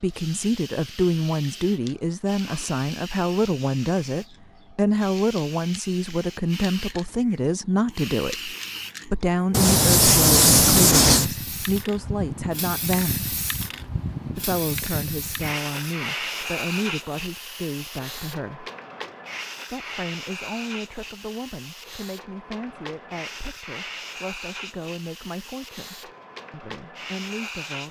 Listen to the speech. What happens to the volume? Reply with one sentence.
The loudness of the speech goes down.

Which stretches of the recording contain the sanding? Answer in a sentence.
You can hear the sanding from 9.5 to 11.3 s.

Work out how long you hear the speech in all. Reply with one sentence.
The speech can be heard for 26 seconds in total.